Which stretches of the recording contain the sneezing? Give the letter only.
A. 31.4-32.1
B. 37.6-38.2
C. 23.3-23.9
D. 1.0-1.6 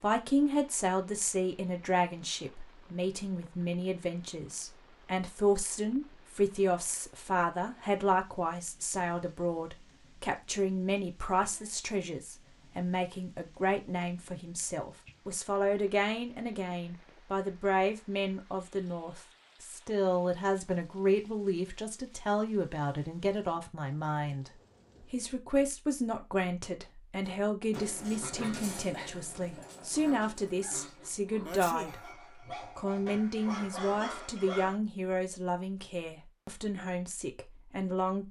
A.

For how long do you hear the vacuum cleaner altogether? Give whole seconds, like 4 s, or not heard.
not heard.